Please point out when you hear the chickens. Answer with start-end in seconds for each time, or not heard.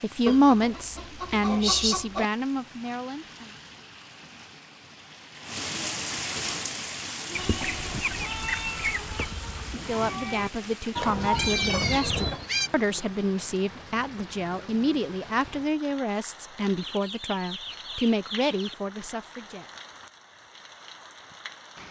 0.2-2.2, 7.3-9.3, 10.9-12.5, 16.8-18.8.